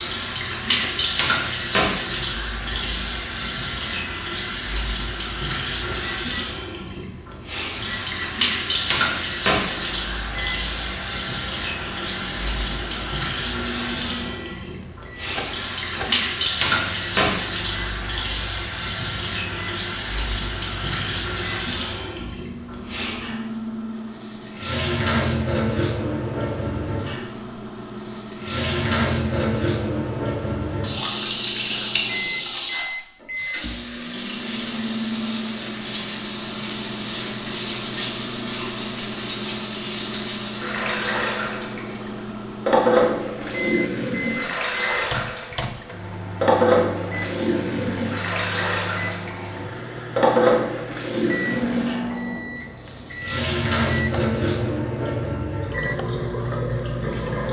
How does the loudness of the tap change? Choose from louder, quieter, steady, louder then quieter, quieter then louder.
steady.